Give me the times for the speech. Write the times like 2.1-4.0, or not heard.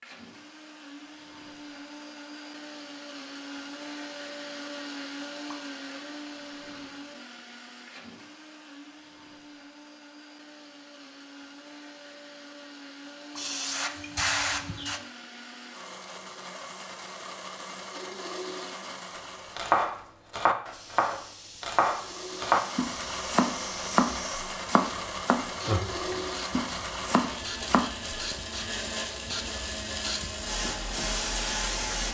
not heard.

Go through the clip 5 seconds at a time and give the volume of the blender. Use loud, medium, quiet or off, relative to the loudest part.
medium, medium, medium, medium, loud, loud, loud.